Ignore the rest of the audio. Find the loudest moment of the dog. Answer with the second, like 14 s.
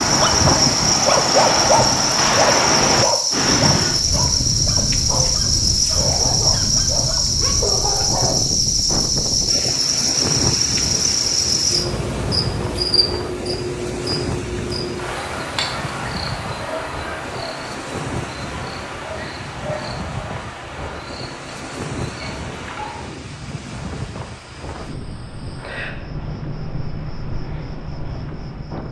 1 s.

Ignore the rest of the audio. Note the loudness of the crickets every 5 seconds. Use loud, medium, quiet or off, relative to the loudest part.
loud, loud, loud, medium, quiet, quiet.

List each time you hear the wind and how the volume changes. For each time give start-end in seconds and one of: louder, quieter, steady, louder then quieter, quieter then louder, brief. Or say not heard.
0.0-28.8 quieter.